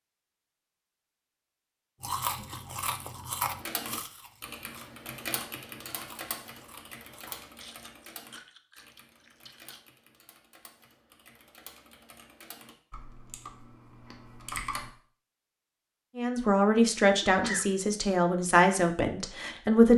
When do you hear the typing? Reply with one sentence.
The typing can be heard from 3.6 to 14.9 s.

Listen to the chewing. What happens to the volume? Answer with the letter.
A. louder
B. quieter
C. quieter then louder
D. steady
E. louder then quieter
B.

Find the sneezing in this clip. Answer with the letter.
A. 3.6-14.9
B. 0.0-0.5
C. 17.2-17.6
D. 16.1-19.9
C.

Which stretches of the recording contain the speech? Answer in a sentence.
The speech can be heard from 16.1 to 19.9 s.